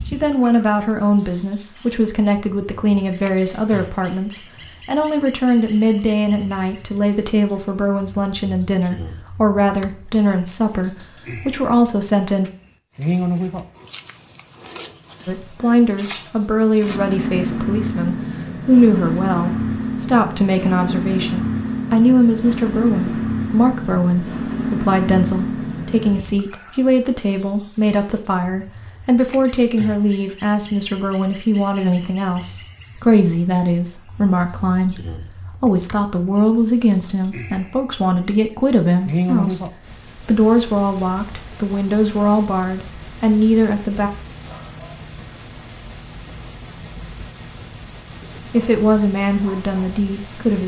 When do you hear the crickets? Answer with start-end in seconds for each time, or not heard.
0.0-50.6.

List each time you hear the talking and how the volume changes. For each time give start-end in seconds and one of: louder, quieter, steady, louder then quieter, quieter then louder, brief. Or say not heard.
0.1-12.5 steady
15.2-44.1 steady
48.5-50.6 brief.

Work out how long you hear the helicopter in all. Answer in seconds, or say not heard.
not heard.